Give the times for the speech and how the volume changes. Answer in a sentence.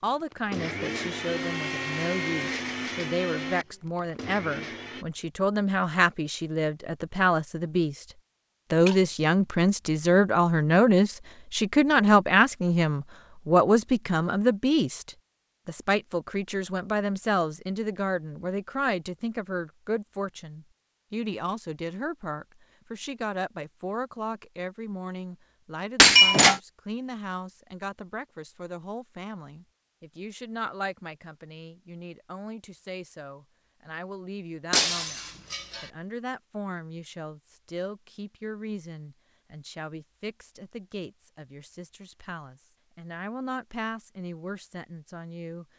You can hear the speech from 0.0 to 8.1 s, getting louder; and from 8.7 to 45.6 s, getting quieter.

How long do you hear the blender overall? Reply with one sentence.
You can hear the blender for 5 seconds altogether.